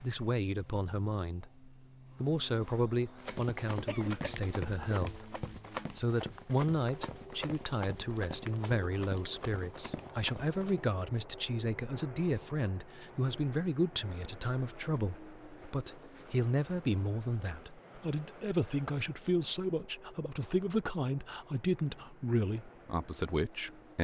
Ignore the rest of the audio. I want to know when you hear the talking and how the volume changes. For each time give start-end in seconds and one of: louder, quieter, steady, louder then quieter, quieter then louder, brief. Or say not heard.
0.0-24.0 steady.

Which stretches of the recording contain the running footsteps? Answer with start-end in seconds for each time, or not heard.
3.0-10.9.